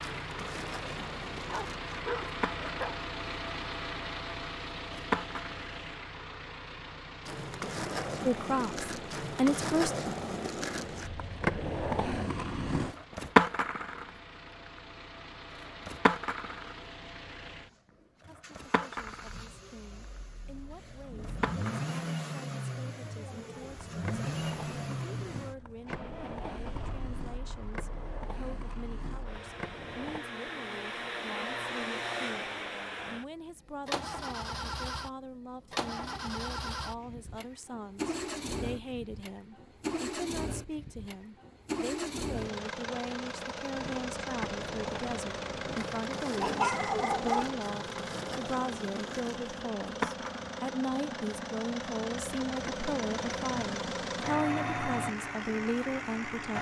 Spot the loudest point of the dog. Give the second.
47 s.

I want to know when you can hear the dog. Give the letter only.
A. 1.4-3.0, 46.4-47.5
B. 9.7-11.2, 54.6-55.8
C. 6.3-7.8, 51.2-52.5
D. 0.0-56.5
A.